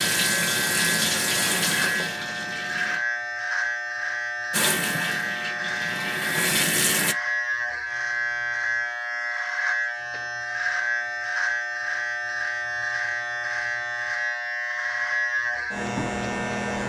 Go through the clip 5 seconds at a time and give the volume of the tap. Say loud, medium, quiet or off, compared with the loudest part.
loud, loud, off, off.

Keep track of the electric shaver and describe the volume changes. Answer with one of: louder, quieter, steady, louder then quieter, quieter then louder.
steady.